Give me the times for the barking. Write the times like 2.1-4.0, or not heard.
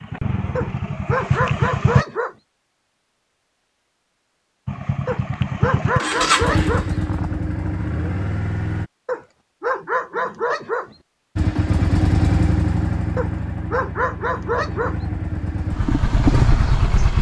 0.6-2.4, 5.0-7.0, 9.1-10.9, 13.2-15.0.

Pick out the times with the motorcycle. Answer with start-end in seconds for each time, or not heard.
0.0-2.0, 4.7-8.9, 11.3-17.1.